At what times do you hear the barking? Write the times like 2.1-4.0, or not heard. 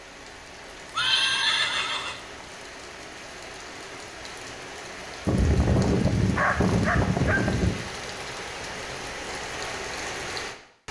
5.2-7.8.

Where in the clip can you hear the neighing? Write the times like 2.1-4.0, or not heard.
0.9-2.5.